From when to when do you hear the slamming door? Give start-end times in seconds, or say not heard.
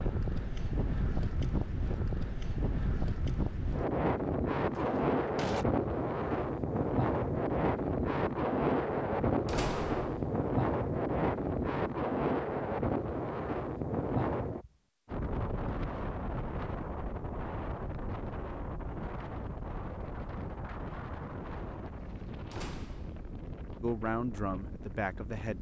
4.7-5.7, 9.4-10.3, 22.5-23.4.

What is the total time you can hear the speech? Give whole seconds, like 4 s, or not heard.
2 s.